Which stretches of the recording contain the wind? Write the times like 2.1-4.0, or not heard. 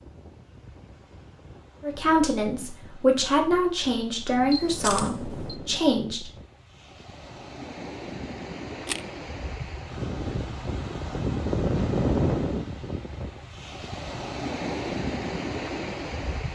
0.0-16.5.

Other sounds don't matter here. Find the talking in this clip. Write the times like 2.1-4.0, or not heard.
1.8-6.3.